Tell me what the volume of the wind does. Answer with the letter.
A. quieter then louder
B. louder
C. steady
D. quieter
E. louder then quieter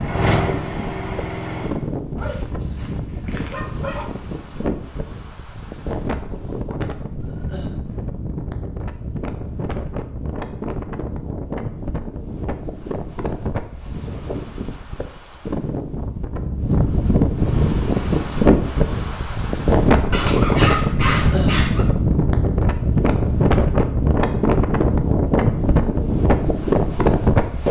B.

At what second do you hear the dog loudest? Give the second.
21 s.